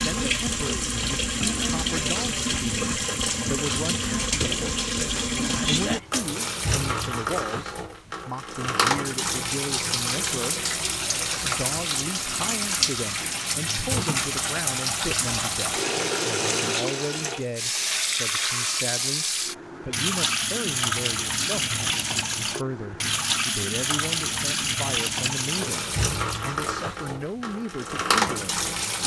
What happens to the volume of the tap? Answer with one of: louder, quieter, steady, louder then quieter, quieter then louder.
steady.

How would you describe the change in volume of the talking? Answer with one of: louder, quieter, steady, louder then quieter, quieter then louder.
steady.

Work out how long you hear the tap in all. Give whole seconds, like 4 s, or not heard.
29 s.